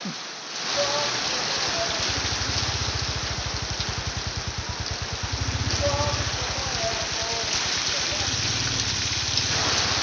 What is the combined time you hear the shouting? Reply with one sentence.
The shouting can be heard for 4 seconds in total.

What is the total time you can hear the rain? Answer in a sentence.
You can hear the rain for 10 seconds altogether.